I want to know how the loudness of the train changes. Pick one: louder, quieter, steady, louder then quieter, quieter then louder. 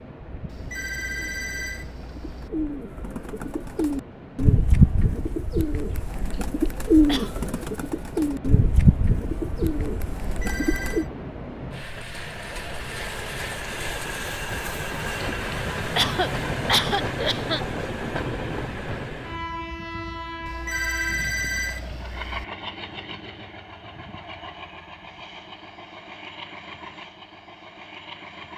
louder then quieter.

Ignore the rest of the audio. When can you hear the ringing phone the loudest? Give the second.
21 s.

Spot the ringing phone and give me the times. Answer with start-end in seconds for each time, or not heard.
0.5-2.5, 10.2-11.1, 20.4-22.4.